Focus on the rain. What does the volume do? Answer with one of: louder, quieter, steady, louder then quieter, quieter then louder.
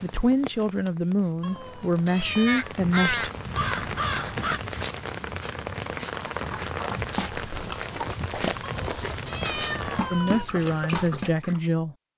louder.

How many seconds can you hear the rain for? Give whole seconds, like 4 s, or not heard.
10 s.